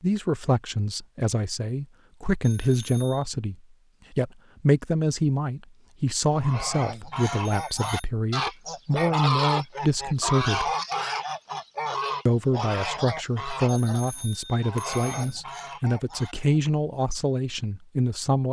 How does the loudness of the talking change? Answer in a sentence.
The loudness of the talking stays about the same.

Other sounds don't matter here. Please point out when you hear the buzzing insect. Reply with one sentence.
The buzzing insect can't be heard in this clip.